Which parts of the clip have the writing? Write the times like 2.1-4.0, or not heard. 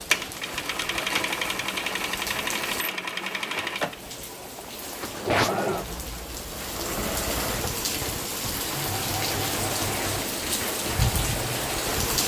not heard.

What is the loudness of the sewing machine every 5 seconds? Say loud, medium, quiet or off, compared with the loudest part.
loud, loud, medium.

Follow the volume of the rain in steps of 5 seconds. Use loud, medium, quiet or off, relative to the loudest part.
medium, loud, loud.